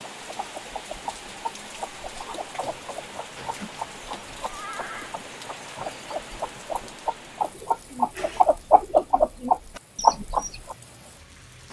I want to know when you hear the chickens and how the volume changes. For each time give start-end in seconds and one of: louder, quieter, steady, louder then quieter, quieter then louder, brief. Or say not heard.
0.2-10.8 louder.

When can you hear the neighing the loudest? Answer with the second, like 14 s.
5 s.